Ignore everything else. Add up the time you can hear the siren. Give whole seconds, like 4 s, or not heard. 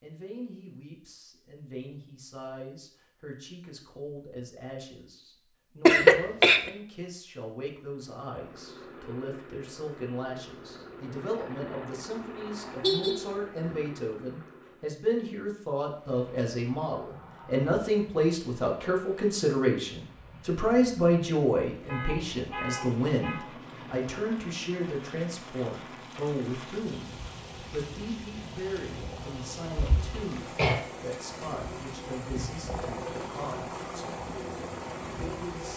not heard.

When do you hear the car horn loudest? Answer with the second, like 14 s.
13 s.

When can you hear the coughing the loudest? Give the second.
6 s.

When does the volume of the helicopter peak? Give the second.
33 s.